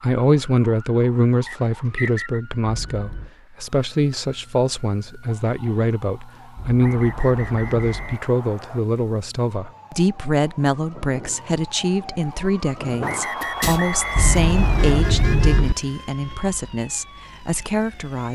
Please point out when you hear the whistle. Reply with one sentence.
The whistle can be heard from 1.4 to 2.4 s, from 6.8 to 8.8 s and from 13.0 to 15.1 s.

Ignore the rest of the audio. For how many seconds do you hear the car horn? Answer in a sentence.
You can hear the car horn for 4 seconds altogether.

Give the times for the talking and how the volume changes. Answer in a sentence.
You can hear the talking from 0.0 to 18.3 s, at a steady volume.